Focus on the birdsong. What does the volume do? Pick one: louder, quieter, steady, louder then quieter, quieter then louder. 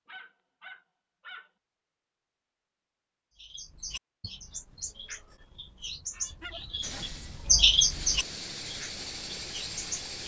louder then quieter.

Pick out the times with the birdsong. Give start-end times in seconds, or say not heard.
3.4-10.1.